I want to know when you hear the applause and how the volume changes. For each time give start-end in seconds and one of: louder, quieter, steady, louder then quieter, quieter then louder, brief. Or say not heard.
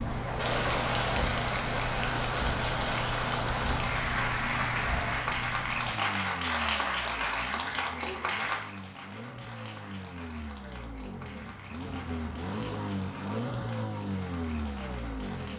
0.0-15.5 quieter.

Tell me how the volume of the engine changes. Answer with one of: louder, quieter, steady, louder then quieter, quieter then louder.
quieter then louder.